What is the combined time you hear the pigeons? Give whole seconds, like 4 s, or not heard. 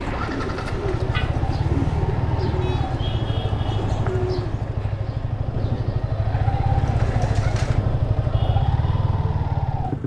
8 s.